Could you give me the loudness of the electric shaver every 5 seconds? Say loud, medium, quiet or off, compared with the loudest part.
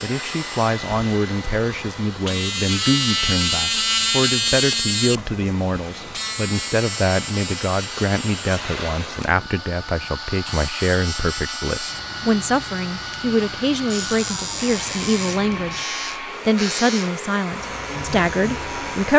loud, medium, medium, medium.